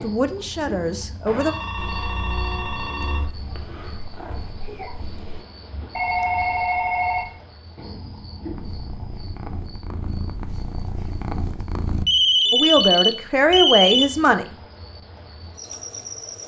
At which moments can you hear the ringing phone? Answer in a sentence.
The ringing phone can be heard from 1.2 to 3.3 s, from 6.0 to 7.3 s and from 12.1 to 14.1 s.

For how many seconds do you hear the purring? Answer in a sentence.
You can hear the purring for 7 seconds altogether.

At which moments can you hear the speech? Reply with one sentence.
You can hear the speech from 0.0 to 1.6 s and from 12.5 to 14.4 s.